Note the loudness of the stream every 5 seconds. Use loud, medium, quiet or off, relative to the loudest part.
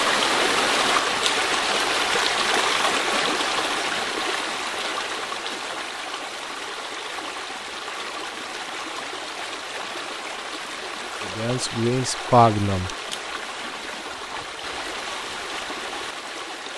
loud, medium, medium, medium.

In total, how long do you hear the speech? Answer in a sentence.
The speech can be heard for 2 seconds in total.